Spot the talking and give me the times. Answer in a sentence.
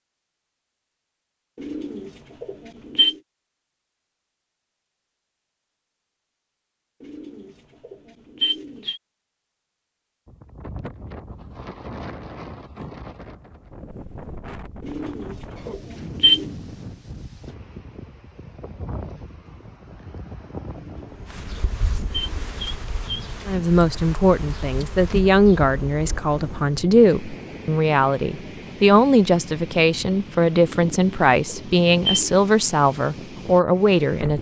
The talking can be heard from 23.4 to 34.3 s.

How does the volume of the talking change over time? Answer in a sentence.
The loudness of the talking stays about the same.